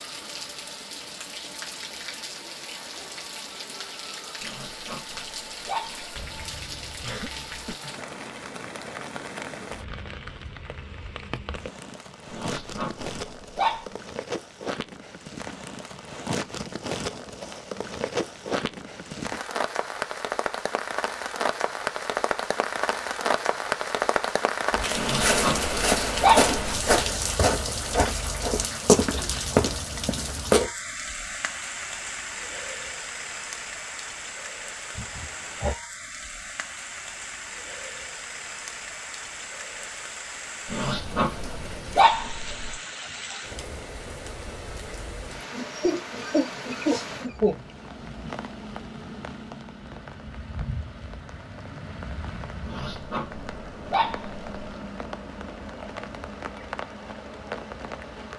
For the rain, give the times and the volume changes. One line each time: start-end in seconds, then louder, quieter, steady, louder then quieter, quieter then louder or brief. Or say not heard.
0.0-58.3 louder then quieter.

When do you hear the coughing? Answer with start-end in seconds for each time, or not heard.
6.2-7.8, 35.0-35.8, 45.5-47.6.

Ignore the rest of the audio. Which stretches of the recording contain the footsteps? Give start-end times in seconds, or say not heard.
24.7-30.7.